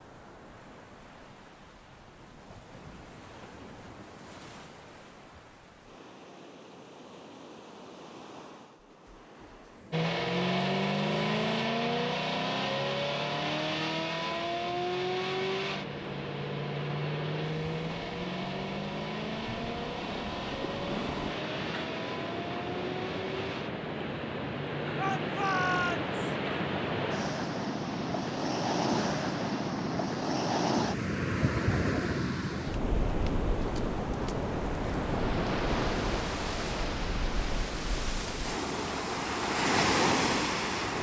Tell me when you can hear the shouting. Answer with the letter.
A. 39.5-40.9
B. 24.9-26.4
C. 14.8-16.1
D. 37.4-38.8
B.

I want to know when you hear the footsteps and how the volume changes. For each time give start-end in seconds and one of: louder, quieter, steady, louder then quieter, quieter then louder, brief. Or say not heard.
not heard.